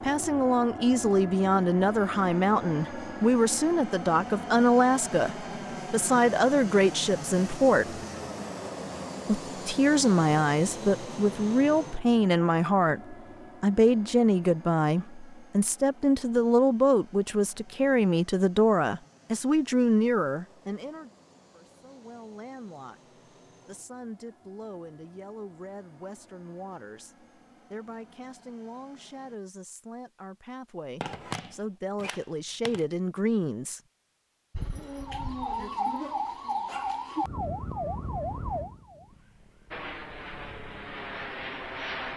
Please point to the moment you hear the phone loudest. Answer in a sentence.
The volume of the phone peaks at 31 seconds.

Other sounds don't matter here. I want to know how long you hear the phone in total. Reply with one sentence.
The phone can be heard for 2 seconds in total.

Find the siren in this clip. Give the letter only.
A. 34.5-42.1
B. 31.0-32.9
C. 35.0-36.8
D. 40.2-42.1
A.